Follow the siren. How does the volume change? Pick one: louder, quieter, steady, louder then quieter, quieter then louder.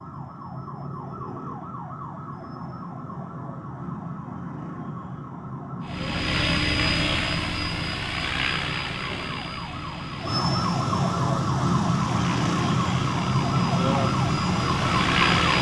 louder.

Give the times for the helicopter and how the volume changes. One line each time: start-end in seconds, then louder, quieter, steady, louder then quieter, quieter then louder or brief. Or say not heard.
5.8-15.5 quieter then louder.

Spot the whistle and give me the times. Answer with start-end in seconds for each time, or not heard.
not heard.